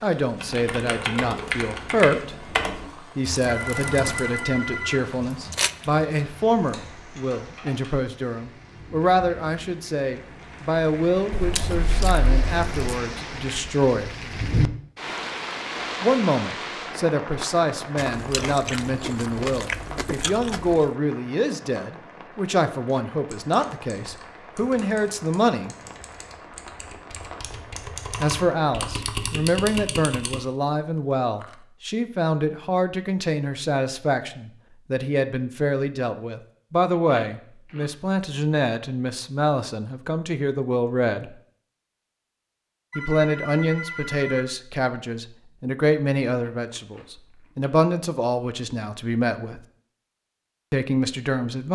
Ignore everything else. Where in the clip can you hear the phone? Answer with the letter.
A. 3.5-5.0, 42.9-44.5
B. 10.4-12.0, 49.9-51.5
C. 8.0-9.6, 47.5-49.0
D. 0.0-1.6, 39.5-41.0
A.